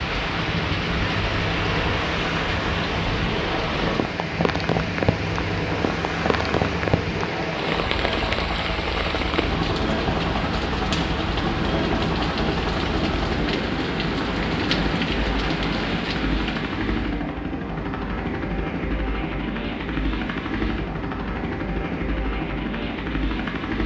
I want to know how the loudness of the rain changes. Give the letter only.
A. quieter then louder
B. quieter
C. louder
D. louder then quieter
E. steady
E.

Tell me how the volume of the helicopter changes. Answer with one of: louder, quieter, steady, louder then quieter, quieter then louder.
steady.